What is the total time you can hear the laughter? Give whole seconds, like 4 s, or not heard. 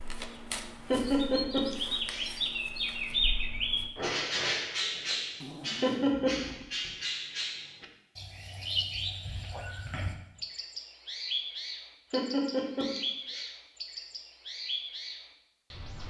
3 s.